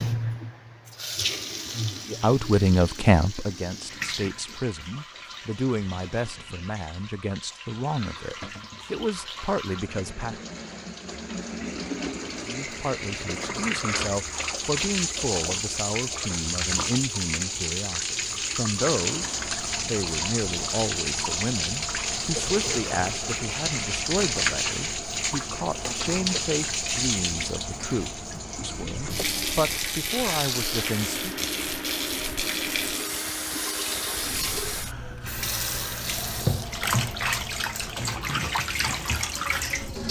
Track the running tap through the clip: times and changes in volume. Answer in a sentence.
You can hear the running tap from 0.0 to 40.0 s, getting louder.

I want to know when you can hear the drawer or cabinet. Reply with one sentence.
You can hear the drawer or cabinet from 8.4 to 8.9 s.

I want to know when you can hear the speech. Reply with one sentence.
You can hear the speech from 2.1 to 10.4 s and from 12.4 to 31.4 s.